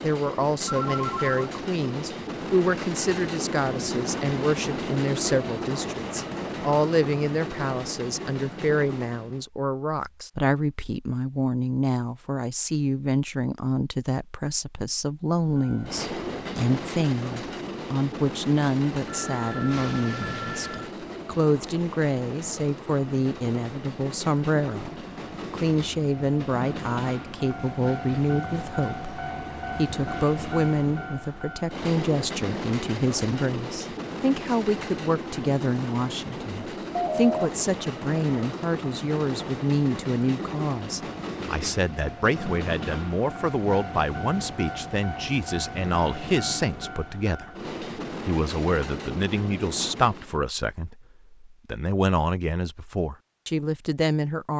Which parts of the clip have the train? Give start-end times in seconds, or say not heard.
0.0-9.4, 15.5-50.4.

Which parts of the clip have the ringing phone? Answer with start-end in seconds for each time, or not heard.
0.7-1.5, 19.1-20.9, 36.9-37.5.